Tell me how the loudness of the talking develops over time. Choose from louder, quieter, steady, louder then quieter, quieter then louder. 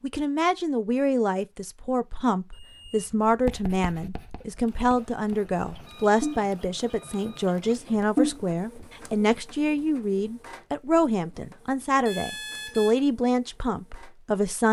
steady.